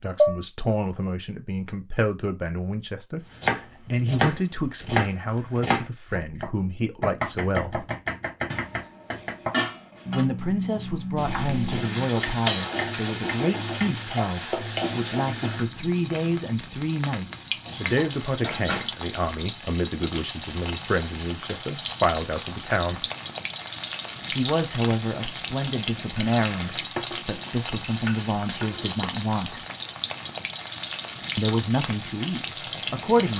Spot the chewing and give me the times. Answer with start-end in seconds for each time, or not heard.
not heard.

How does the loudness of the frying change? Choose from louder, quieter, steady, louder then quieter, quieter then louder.
steady.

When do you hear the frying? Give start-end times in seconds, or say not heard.
11.2-33.3.